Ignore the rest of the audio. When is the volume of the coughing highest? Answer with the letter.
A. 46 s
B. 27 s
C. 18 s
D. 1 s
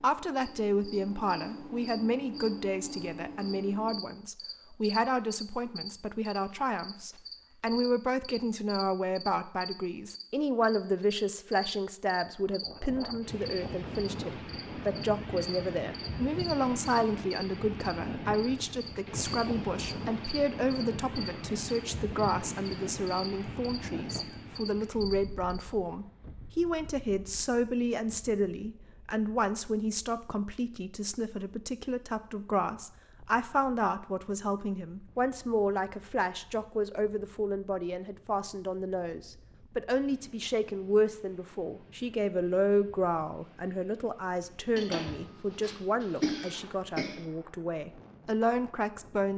A.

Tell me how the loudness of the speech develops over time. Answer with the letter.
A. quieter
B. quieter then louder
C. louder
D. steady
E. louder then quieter
D.